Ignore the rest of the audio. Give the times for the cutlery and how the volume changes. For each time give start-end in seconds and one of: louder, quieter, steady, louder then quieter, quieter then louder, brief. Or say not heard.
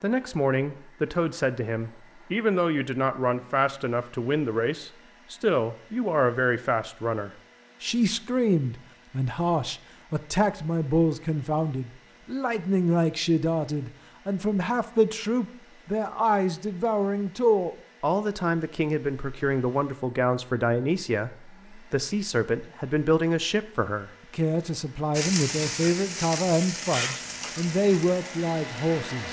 not heard.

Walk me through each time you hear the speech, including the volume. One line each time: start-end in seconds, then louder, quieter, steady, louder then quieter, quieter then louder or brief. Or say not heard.
0.0-29.2 steady.